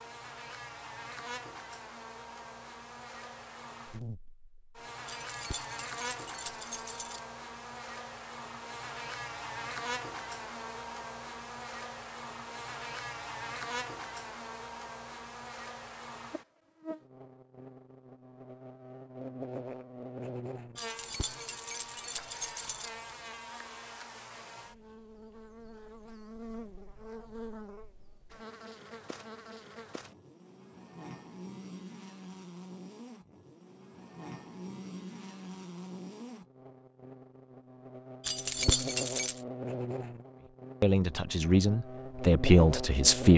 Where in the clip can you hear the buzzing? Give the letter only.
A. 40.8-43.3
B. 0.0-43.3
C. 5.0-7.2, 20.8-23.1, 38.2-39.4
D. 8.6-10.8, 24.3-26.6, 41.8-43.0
B.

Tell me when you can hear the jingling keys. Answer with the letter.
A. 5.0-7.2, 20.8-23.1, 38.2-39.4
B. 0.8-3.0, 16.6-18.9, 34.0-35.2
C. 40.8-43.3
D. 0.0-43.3
A.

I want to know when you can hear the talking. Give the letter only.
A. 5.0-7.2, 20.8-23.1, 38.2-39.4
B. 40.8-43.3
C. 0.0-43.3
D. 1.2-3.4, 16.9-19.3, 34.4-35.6
B.